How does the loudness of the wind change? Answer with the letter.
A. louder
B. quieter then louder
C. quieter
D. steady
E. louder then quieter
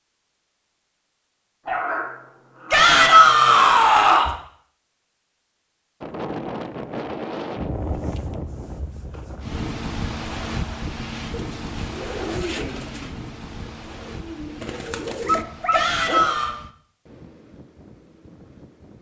C.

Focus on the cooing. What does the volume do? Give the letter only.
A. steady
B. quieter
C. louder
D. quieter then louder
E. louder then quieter
D.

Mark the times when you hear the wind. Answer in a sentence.
The wind can be heard from 6.0 to 18.9 s.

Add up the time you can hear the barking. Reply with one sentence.
You can hear the barking for 3 seconds altogether.